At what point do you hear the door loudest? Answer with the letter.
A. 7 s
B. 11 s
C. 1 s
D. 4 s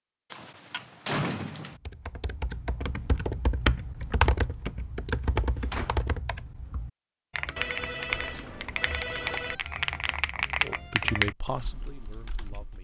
C.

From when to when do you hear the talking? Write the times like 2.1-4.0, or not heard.
10.6-12.7.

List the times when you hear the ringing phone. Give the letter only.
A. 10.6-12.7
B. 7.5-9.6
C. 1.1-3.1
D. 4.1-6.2
B.